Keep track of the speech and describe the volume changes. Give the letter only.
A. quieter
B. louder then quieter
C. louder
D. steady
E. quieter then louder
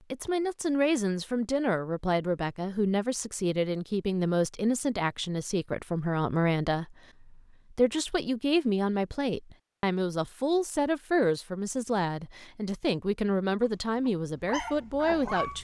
D.